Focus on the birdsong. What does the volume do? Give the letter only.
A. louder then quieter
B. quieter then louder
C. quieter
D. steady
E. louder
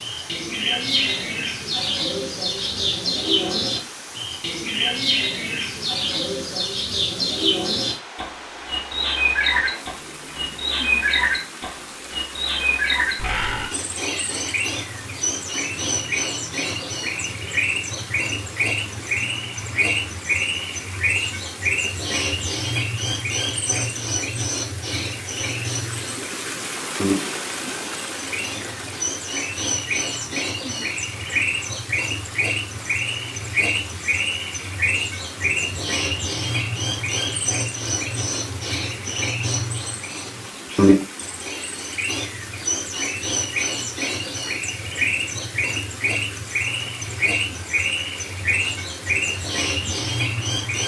D.